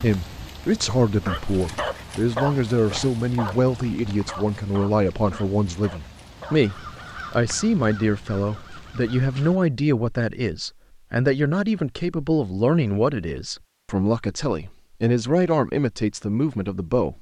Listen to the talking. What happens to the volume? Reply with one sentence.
The loudness of the talking stays about the same.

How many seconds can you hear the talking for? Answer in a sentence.
The talking can be heard for 17 seconds in total.